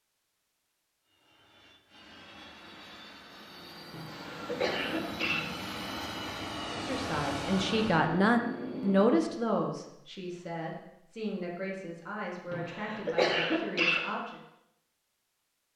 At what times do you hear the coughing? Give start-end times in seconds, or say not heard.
3.9-5.5, 12.5-14.1.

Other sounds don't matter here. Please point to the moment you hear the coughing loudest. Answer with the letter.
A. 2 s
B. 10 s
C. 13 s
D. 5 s
C.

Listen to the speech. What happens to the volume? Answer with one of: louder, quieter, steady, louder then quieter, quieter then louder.
quieter.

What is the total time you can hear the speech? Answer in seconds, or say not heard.
8 s.